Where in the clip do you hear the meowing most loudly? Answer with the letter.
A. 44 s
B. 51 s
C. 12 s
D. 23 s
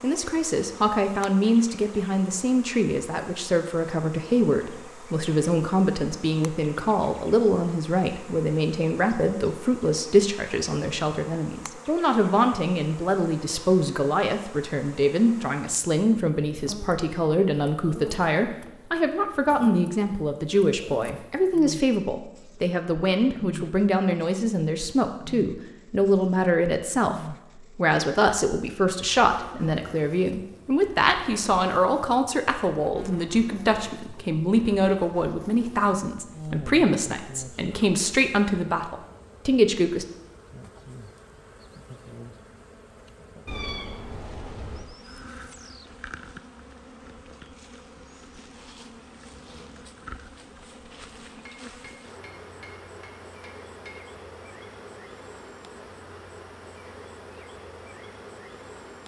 A.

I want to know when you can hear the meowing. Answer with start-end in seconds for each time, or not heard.
43.5-44.9.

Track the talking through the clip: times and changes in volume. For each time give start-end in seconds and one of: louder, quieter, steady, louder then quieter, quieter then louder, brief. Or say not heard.
0.0-40.0 steady.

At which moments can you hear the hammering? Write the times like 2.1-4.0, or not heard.
51.5-54.0.